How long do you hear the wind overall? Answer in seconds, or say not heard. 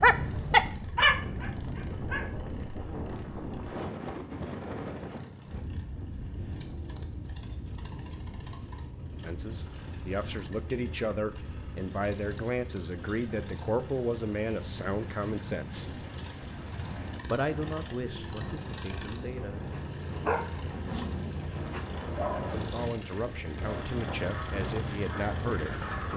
26 s.